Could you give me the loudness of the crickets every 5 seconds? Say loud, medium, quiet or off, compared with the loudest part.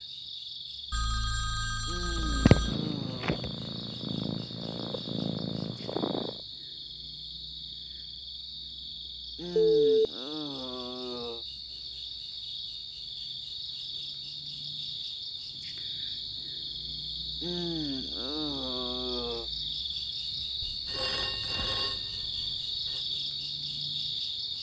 medium, medium, medium, loud, loud.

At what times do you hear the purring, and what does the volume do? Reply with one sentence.
The purring can be heard from 2.1 to 6.4 s, getting quieter.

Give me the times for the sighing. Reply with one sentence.
You can hear the sighing from 1.9 to 3.5 s, from 9.3 to 11.4 s and from 17.4 to 19.5 s.